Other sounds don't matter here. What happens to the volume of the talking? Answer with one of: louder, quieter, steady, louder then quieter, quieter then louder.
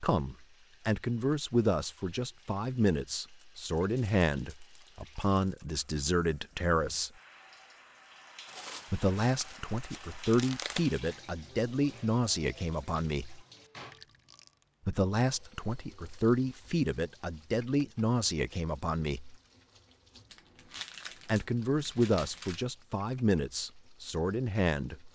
steady.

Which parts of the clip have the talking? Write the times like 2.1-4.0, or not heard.
0.0-7.1, 8.9-13.4, 14.8-19.4, 21.2-25.1.